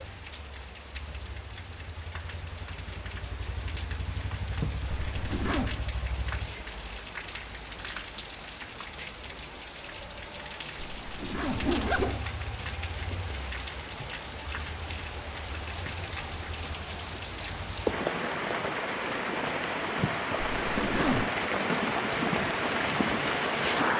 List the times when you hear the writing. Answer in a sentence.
You can't hear the writing here.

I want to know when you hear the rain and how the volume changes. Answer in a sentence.
The rain can be heard from 0.0 to 23.9 s, getting louder.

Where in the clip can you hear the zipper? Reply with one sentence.
The zipper can be heard from 4.9 to 5.8 s, from 10.8 to 12.2 s and from 20.6 to 21.3 s.